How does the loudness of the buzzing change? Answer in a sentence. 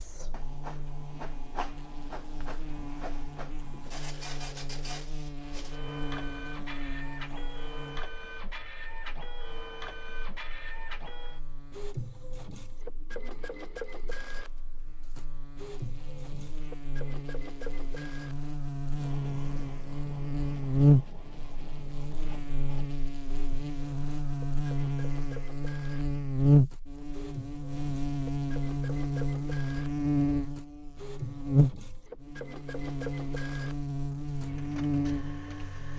The loudness of the buzzing goes down, then up.